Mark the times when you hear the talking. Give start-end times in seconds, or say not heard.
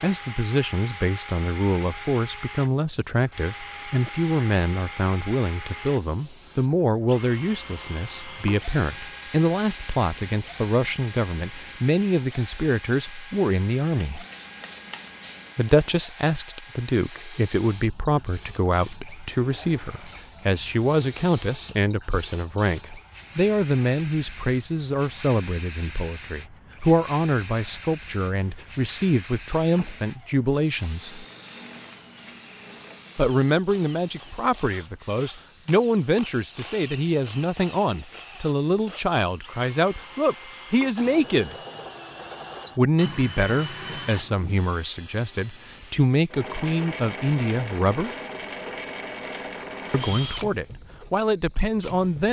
0.0-14.2, 15.6-31.2, 33.1-41.5, 42.8-48.1, 49.9-52.2.